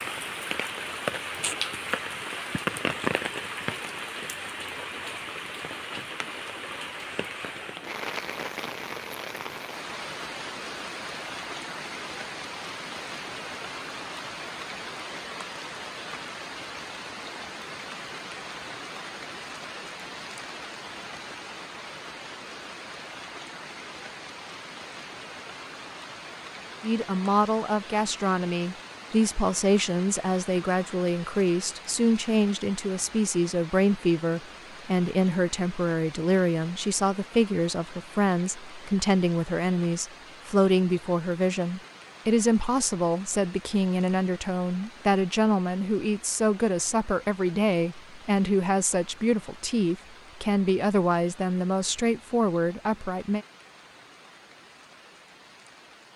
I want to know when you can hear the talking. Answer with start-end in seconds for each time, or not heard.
26.8-53.5.